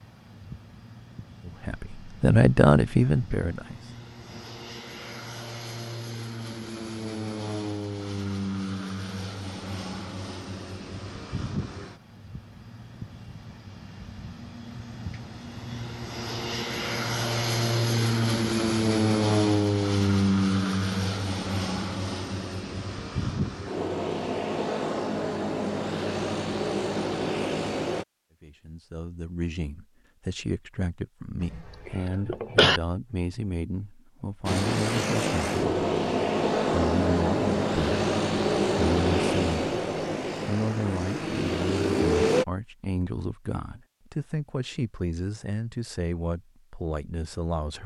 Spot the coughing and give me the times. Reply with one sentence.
The coughing can be heard from 31.4 to 32.8 s.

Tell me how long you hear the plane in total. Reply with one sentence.
The plane can be heard for 36 seconds in total.